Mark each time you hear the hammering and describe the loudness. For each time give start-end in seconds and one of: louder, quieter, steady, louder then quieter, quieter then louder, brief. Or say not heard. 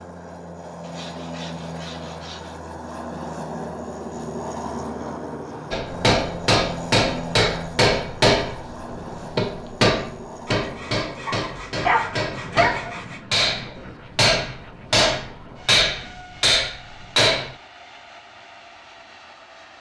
5.7-17.6 quieter then louder.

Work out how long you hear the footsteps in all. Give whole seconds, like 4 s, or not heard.
not heard.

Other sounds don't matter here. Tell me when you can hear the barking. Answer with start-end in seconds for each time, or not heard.
11.2-13.0.